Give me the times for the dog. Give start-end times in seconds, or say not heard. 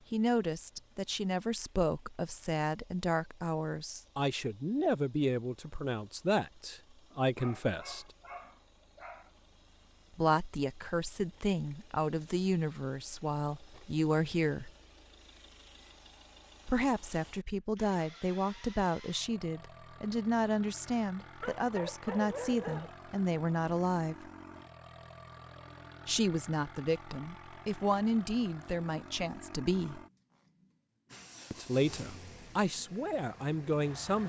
7.2-9.3, 21.4-22.9.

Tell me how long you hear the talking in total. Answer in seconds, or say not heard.
27 s.